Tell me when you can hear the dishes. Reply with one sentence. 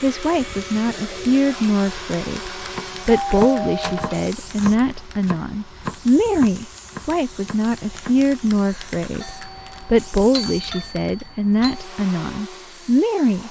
You can't hear the dishes here.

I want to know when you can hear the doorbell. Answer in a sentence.
The doorbell can be heard from 3.1 to 4.3 s and from 9.2 to 11.9 s.